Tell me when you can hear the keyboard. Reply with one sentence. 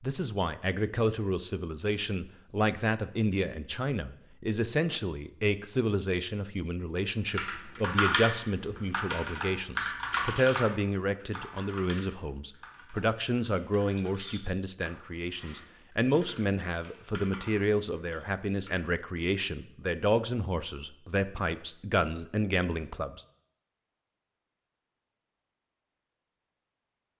You can hear the keyboard from 7.2 to 18.9 s.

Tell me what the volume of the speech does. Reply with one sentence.
The volume of the speech stays about the same.